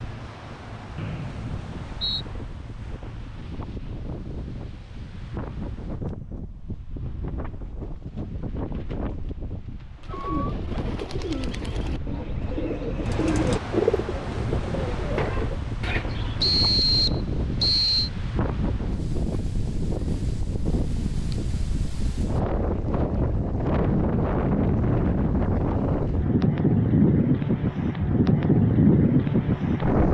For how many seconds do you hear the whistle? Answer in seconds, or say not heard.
3 s.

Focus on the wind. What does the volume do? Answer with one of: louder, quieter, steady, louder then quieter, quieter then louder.
louder.